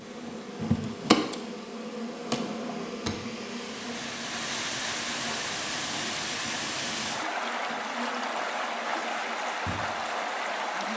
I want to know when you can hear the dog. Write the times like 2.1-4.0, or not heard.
not heard.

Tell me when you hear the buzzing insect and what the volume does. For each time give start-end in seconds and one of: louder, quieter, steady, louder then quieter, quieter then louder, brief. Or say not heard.
0.0-10.9 quieter.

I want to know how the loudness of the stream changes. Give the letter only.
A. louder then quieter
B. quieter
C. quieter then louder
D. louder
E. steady
D.